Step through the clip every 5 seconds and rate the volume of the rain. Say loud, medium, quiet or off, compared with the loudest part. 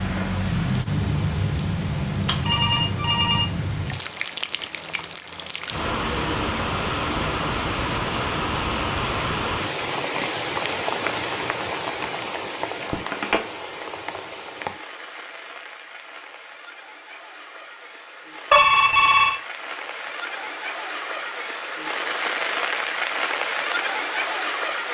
loud, loud, loud, quiet, loud.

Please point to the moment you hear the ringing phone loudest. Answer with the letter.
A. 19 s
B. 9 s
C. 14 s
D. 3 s
A.